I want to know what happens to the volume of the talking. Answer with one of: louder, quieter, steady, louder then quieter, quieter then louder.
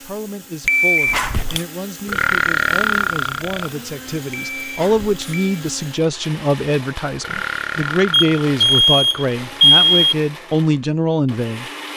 louder.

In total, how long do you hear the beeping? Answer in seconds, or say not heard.
4 s.